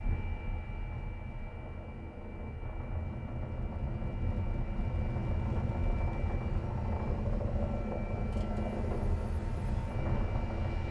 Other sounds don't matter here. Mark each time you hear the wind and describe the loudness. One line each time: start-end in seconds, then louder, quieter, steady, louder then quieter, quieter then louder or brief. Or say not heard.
0.0-10.8 louder.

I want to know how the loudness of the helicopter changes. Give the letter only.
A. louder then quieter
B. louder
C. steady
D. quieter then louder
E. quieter
B.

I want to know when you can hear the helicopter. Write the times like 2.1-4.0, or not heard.
0.0-10.8.